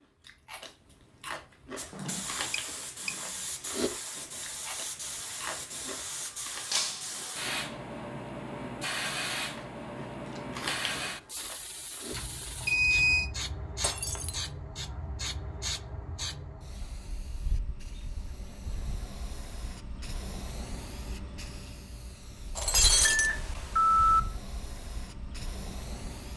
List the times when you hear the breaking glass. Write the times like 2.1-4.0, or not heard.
6.7-7.2, 13.8-14.4, 22.6-23.3.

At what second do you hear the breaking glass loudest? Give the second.
23 s.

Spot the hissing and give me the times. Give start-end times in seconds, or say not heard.
1.8-26.3.